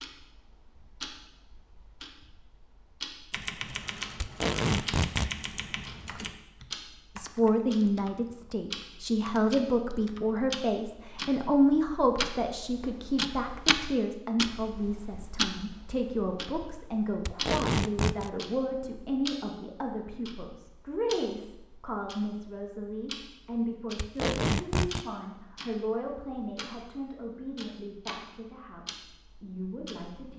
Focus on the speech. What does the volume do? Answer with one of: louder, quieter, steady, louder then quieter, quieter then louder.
quieter.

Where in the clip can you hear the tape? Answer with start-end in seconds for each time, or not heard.
4.2-5.3, 17.2-18.3, 23.9-25.1.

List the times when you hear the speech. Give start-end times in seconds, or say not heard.
7.2-30.3.